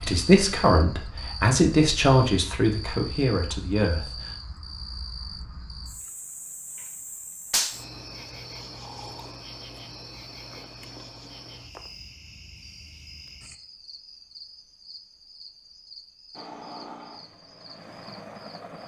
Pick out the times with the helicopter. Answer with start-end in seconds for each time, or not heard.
16.4-18.8.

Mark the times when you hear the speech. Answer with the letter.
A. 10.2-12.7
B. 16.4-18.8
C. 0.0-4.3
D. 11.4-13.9
C.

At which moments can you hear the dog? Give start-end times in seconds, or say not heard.
not heard.